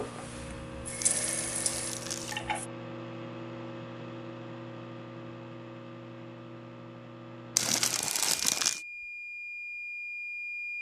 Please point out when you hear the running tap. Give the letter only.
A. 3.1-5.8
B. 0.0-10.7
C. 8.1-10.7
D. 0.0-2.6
D.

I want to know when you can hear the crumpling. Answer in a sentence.
You can hear the crumpling from 1.0 to 2.4 s and from 7.5 to 8.8 s.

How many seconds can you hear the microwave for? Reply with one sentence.
The microwave can be heard for 11 seconds in total.